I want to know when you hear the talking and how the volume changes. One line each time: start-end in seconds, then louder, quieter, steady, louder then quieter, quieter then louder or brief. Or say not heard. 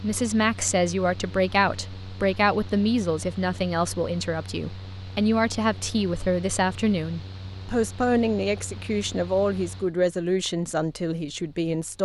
0.0-11.9 steady.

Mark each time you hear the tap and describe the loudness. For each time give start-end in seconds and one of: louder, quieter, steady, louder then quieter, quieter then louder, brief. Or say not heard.
not heard.